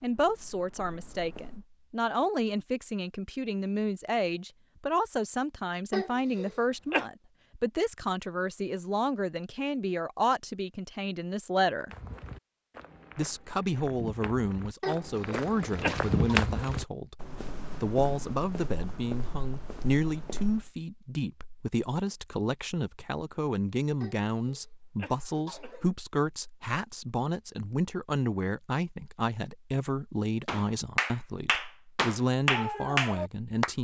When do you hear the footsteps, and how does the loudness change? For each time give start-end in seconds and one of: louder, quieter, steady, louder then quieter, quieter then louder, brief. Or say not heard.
0.0-1.6 brief
11.9-20.7 louder then quieter.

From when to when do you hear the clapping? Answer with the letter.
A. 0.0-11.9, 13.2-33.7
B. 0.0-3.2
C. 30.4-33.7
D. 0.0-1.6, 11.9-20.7
C.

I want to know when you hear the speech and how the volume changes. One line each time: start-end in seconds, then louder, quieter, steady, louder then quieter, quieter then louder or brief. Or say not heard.
0.0-11.9 steady
13.2-33.7 steady.